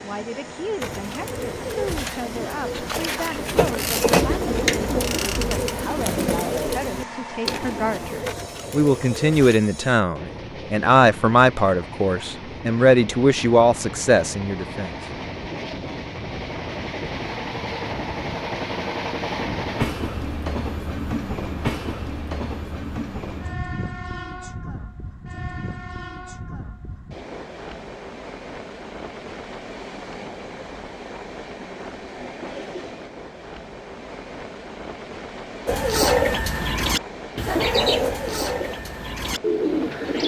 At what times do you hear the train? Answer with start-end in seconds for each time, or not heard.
0.0-40.2.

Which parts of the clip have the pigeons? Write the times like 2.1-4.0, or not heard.
0.8-9.6, 35.6-40.2.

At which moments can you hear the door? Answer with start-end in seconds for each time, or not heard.
not heard.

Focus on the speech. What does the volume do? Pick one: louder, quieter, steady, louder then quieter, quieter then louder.
louder.